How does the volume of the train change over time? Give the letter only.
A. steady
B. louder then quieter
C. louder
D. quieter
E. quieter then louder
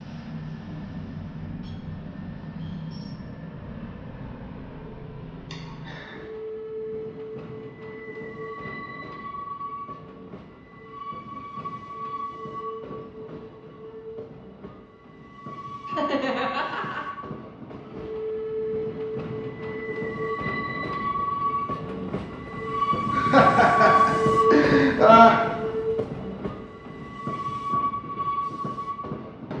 C.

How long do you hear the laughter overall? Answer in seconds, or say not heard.
4 s.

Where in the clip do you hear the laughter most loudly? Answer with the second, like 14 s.
25 s.